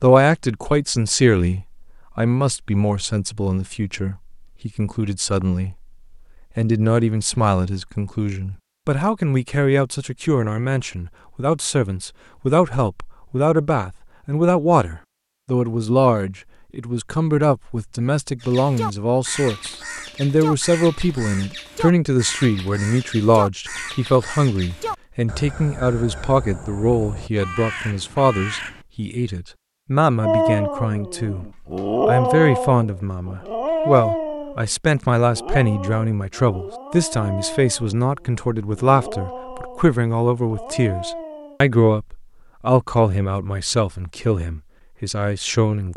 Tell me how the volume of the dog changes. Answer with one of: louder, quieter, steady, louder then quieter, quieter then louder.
quieter.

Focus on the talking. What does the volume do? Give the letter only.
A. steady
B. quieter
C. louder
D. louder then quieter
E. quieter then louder
A.